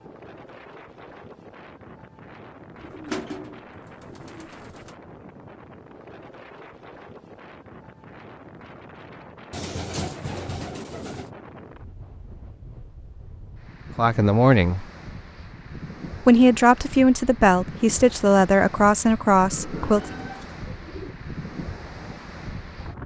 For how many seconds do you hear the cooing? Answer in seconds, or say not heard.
6 s.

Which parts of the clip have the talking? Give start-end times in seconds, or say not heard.
13.9-14.8, 16.2-20.1.